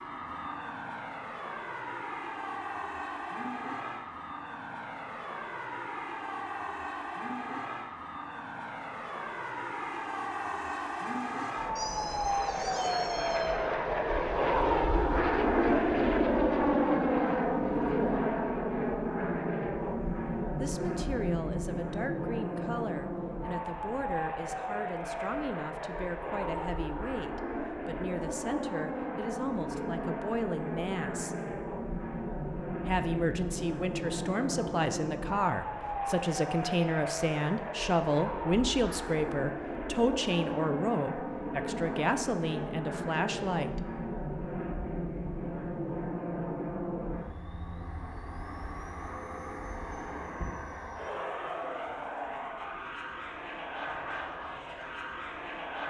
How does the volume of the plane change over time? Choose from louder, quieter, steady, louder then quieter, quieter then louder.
louder then quieter.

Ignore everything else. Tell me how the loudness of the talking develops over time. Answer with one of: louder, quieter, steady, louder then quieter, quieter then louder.
louder.